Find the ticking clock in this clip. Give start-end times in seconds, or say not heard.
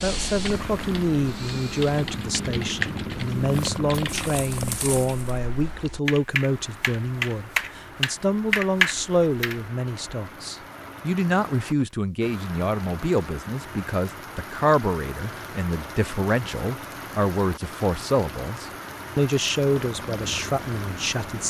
not heard.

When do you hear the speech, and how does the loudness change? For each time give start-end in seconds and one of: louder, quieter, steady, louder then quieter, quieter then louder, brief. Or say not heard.
0.0-21.4 steady.